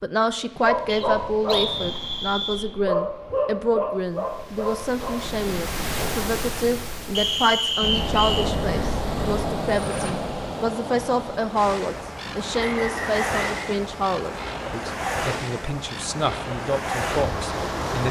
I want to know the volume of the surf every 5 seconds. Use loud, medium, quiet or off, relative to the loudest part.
quiet, loud, loud, loud.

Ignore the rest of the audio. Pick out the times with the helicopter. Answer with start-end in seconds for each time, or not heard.
7.8-10.2.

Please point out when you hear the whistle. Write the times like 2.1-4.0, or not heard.
0.8-2.7, 7.2-8.5, 12.6-13.7.